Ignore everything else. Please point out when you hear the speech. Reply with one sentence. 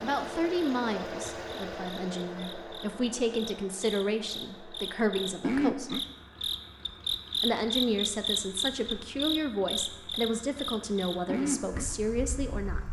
The speech can be heard from 0.0 to 6.0 s and from 7.4 to 12.8 s.